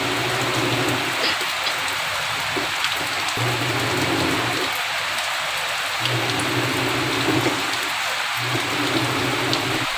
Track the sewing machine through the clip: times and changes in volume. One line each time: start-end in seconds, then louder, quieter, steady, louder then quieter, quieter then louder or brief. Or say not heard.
0.0-9.9 steady.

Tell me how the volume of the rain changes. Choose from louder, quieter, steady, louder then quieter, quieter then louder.
steady.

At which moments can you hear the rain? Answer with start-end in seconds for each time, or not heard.
0.0-9.9.